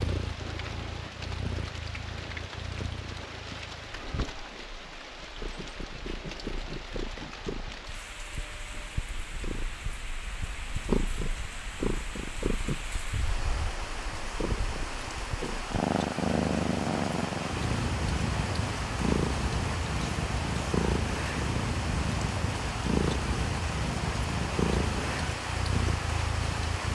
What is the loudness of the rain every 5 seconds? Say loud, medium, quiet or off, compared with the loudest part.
medium, medium, medium, loud, loud, loud.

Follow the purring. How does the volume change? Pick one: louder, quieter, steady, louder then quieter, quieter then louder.
louder.